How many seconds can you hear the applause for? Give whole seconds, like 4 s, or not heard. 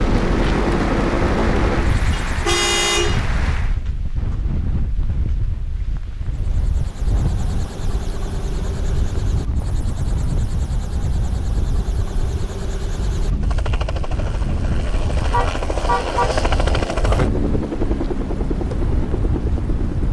4 s.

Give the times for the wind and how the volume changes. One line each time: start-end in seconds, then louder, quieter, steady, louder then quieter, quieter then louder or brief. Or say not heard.
0.0-20.0 steady.